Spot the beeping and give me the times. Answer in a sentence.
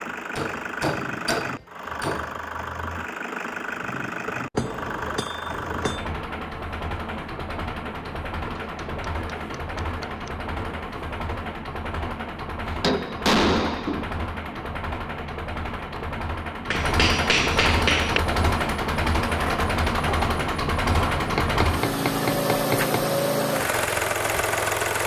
The beeping can't be heard in this clip.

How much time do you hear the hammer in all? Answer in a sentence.
You can hear the hammer for 10 seconds altogether.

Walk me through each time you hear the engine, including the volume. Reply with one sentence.
The engine can be heard from 0.0 to 25.0 s, getting louder.